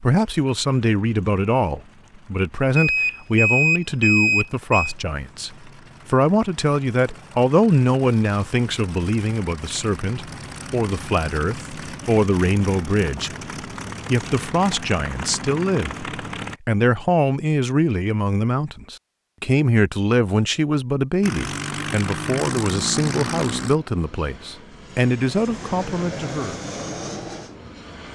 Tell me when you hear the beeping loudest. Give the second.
4 s.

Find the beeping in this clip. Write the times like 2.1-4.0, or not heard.
2.8-5.0.